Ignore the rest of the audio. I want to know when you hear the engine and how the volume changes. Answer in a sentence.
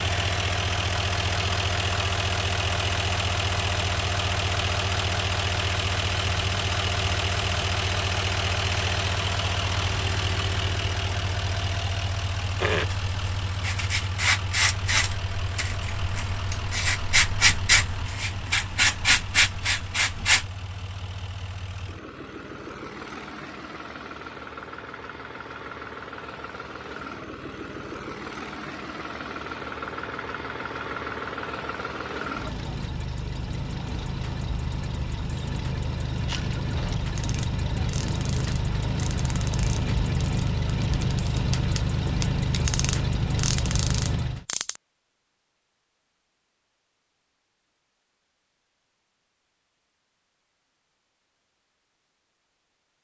You can hear the engine from 0.0 to 44.5 s, getting quieter then louder.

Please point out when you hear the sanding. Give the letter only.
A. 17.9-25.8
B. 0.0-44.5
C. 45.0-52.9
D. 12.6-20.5
D.